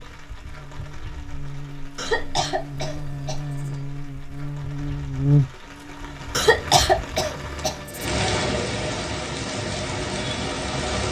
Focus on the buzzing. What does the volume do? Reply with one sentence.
The loudness of the buzzing goes up, then down.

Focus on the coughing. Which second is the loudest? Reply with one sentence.
The loudest moment of the coughing is at 7 seconds.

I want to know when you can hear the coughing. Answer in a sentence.
The coughing can be heard from 1.9 to 3.8 s and from 6.3 to 8.2 s.